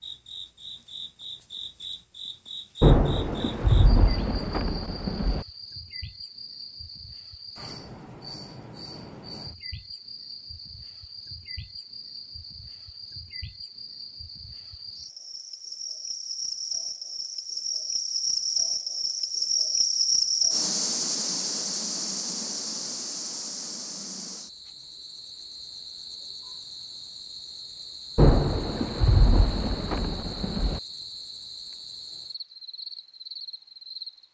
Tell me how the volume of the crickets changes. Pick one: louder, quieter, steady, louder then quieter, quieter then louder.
louder then quieter.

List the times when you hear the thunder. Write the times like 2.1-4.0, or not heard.
2.8-5.5, 28.1-30.8.